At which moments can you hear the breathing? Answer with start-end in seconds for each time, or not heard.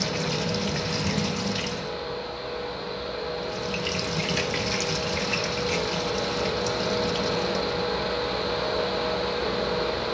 not heard.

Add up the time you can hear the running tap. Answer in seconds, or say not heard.
6 s.